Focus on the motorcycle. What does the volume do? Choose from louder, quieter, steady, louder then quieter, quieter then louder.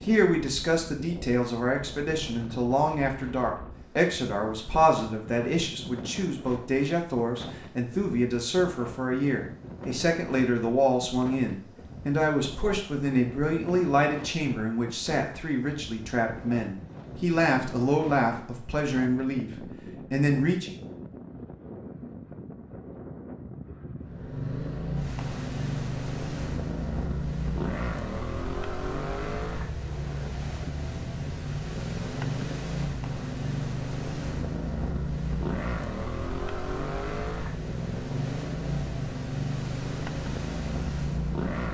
steady.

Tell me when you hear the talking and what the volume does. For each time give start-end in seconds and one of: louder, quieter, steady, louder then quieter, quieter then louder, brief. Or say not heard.
0.0-20.8 steady.